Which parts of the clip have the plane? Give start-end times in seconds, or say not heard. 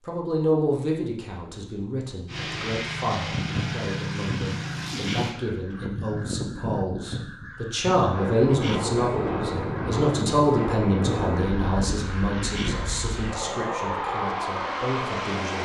2.2-5.3, 8.1-15.6.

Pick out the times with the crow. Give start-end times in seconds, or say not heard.
3.3-12.8.